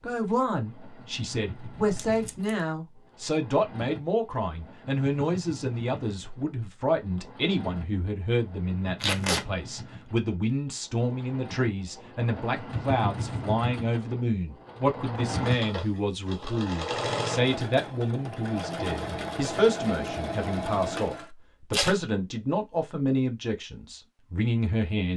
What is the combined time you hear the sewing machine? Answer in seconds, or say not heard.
21 s.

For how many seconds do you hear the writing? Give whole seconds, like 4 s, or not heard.
not heard.